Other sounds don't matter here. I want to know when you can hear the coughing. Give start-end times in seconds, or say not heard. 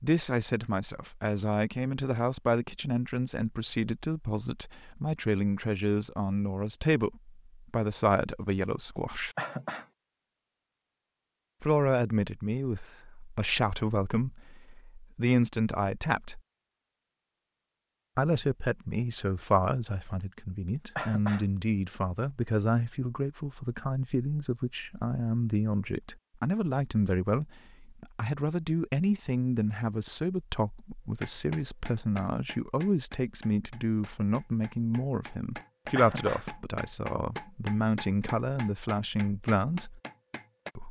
9.3-9.8, 20.9-21.4, 36.0-36.5.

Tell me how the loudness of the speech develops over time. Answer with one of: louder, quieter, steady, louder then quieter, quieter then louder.
steady.